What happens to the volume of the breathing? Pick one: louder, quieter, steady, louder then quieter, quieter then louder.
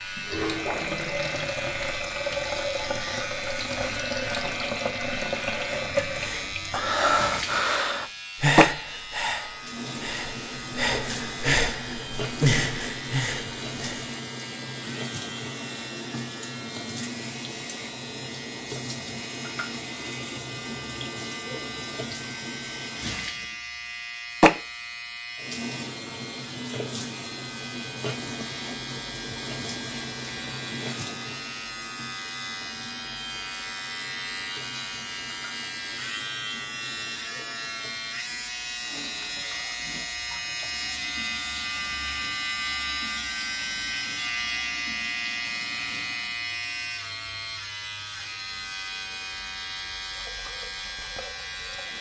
quieter then louder.